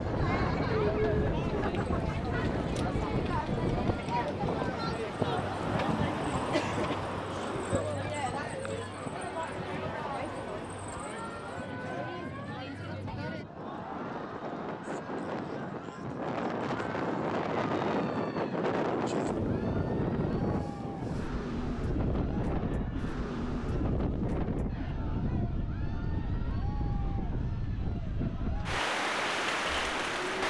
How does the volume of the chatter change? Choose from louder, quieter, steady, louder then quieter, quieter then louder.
quieter.